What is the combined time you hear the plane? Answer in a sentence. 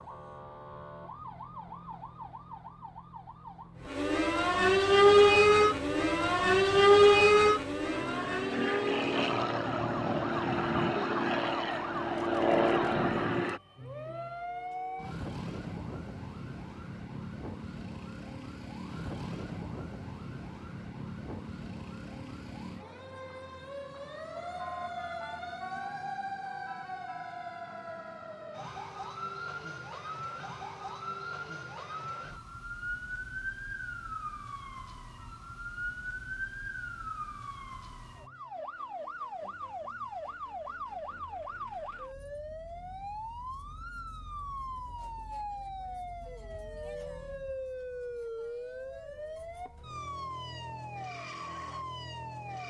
You can hear the plane for 9 seconds altogether.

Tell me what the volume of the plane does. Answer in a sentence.
The volume of the plane goes up.